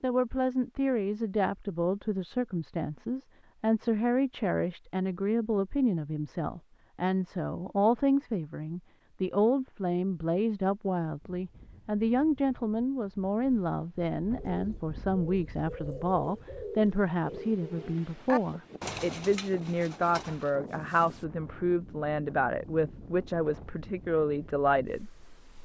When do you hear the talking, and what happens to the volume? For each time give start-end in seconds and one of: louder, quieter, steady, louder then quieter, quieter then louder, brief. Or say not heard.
0.0-25.1 steady.